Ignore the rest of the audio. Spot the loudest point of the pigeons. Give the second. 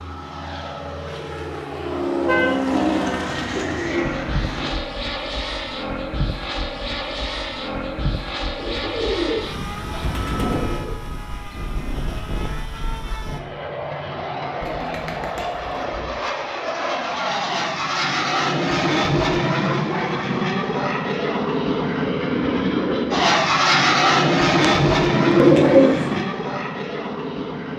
26 s.